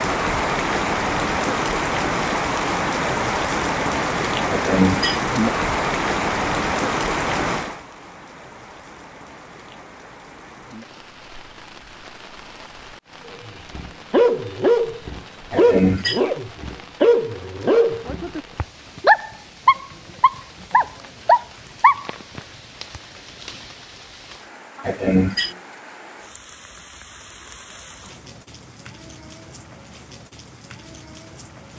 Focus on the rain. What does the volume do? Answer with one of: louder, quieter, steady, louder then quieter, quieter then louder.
quieter.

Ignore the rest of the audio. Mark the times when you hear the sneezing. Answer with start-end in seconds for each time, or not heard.
4.5-5.2, 15.5-16.2, 24.8-25.5.